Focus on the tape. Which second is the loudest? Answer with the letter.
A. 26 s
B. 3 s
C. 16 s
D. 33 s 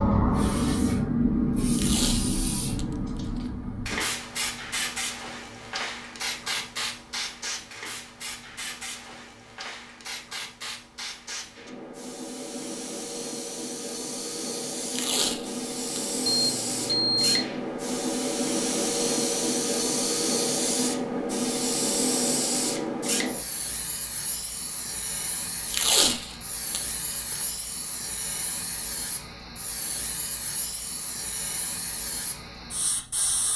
A.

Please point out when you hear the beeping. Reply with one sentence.
The beeping can be heard from 16.2 to 17.5 s.